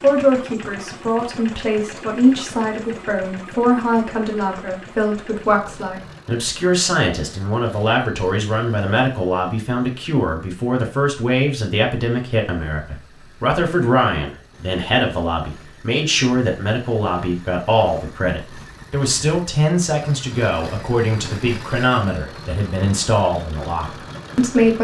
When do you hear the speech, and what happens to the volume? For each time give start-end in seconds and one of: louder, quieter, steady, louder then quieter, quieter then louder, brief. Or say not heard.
0.0-24.8 steady.